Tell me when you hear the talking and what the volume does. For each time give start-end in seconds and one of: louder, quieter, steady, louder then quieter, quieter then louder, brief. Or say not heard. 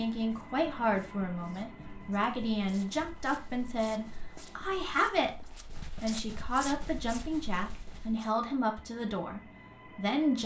0.0-10.4 steady.